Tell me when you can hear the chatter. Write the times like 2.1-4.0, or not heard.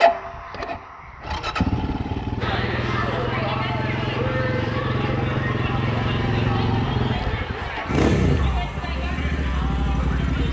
2.4-10.4.